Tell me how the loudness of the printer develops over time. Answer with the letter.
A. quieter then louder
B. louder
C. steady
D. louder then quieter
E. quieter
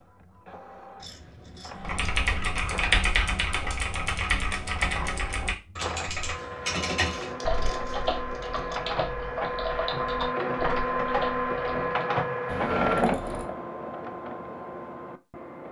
B.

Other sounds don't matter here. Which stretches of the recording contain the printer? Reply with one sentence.
The printer can be heard from 0.0 to 15.6 s.